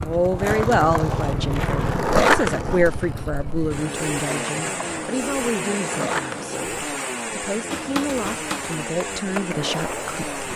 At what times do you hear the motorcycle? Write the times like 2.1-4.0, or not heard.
0.0-10.5.